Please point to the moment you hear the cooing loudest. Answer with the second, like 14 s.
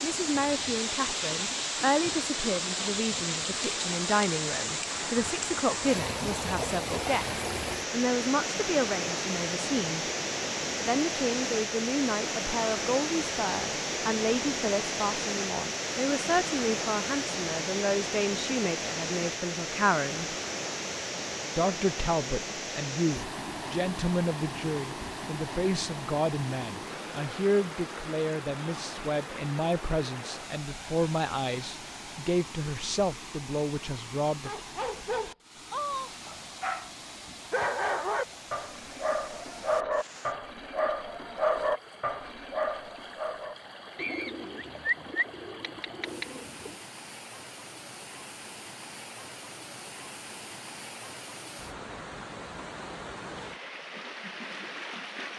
45 s.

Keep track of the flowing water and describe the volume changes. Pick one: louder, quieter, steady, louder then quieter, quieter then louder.
quieter.